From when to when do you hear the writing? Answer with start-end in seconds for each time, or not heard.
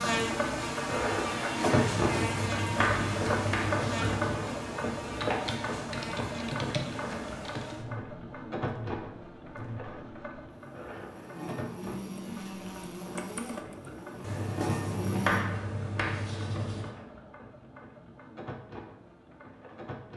1.9-4.5, 14.2-16.9.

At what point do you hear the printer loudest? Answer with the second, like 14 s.
2 s.